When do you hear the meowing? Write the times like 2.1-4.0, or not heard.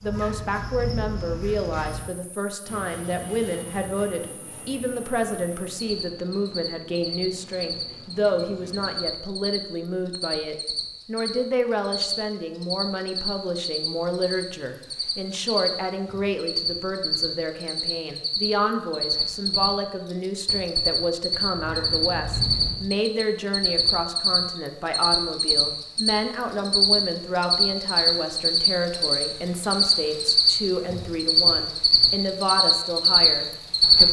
0.0-2.0, 21.6-22.8.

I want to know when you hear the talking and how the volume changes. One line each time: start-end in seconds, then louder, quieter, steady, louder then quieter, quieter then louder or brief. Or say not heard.
0.0-34.0 steady.